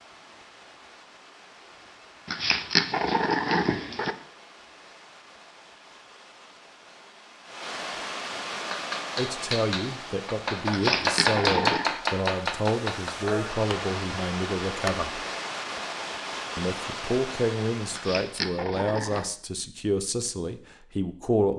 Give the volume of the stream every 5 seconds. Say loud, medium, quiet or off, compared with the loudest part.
quiet, loud, loud, loud, off.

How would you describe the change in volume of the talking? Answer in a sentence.
The loudness of the talking stays about the same.